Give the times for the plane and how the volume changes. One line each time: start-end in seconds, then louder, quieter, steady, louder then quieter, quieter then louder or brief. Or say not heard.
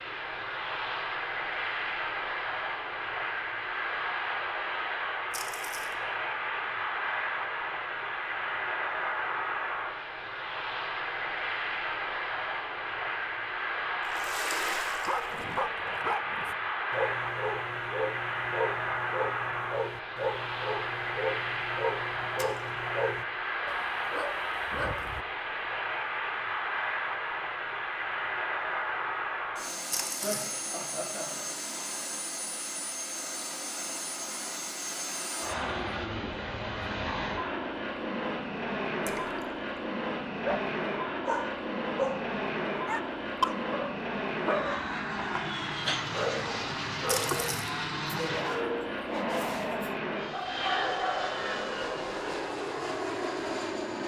0.0-54.0 steady.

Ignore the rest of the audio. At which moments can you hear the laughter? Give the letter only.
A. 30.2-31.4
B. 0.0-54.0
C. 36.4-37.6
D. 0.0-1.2
A.